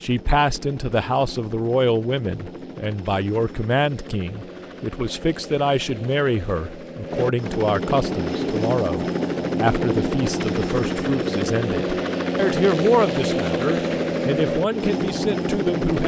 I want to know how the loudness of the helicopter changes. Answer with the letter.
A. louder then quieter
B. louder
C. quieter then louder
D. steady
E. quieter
B.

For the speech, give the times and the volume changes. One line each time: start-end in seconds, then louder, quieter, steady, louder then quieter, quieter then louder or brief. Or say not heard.
0.0-16.0 steady.